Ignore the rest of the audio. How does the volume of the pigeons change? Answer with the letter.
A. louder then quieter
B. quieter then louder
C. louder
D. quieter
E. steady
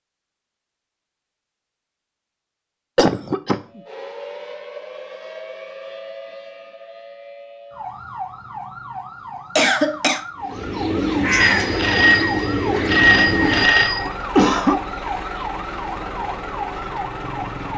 D.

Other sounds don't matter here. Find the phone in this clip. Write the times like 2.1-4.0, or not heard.
11.4-14.1.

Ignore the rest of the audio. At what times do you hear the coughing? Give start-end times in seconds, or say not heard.
3.0-3.8, 9.6-10.2, 14.1-14.8.